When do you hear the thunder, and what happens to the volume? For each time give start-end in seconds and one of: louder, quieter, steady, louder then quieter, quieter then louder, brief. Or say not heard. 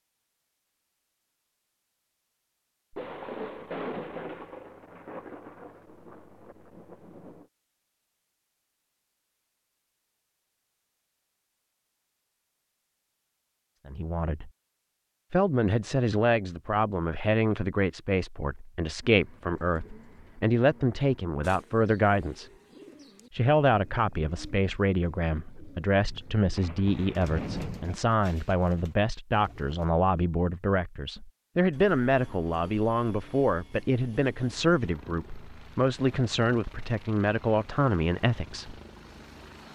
2.9-7.5 quieter
26.6-27.9 brief.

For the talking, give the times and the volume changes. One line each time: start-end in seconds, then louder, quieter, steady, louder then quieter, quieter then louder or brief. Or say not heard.
13.8-14.5 brief
15.3-22.5 steady
23.3-38.8 steady.